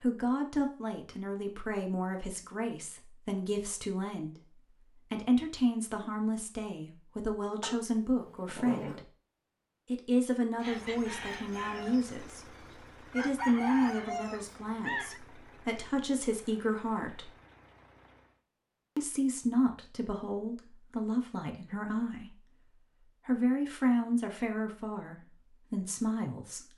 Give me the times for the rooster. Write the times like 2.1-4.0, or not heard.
10.6-15.2.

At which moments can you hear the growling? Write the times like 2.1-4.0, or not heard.
7.6-9.1.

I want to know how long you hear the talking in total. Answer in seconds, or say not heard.
24 s.